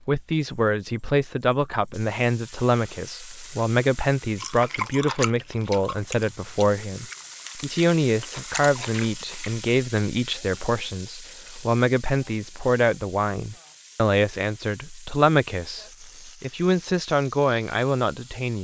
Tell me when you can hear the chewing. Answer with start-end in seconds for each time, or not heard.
4.3-9.5.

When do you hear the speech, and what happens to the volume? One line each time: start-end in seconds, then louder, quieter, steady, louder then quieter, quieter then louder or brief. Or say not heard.
0.1-18.5 steady.